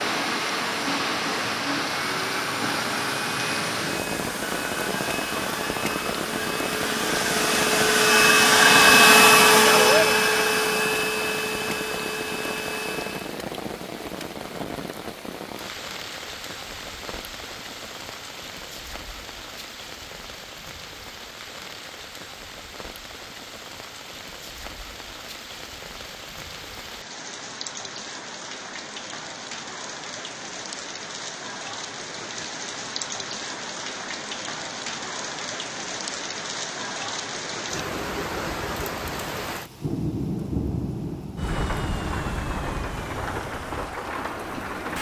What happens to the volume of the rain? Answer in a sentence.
The volume of the rain goes down, then up.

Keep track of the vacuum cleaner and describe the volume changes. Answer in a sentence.
The volume of the vacuum cleaner goes up, then down.